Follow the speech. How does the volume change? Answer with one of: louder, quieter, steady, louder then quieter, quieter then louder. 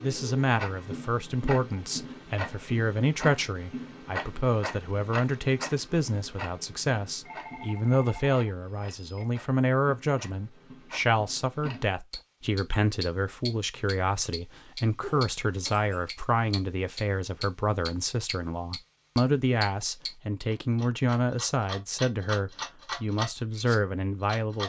steady.